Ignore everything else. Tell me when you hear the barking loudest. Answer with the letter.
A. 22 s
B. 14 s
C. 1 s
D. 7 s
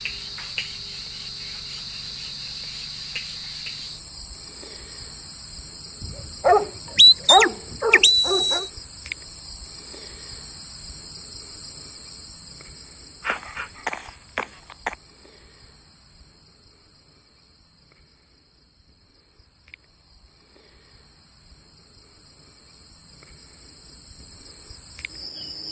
D.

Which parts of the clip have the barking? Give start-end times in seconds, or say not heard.
6.0-8.7, 13.2-14.9.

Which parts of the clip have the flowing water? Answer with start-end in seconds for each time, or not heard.
not heard.